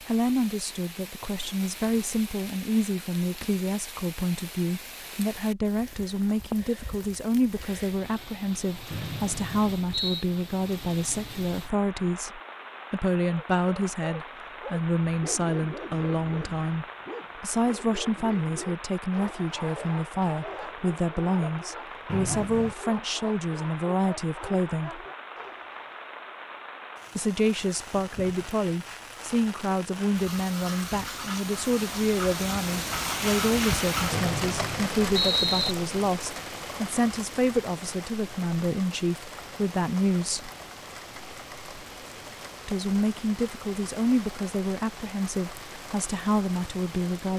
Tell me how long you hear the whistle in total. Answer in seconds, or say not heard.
4 s.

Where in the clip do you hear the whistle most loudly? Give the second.
35 s.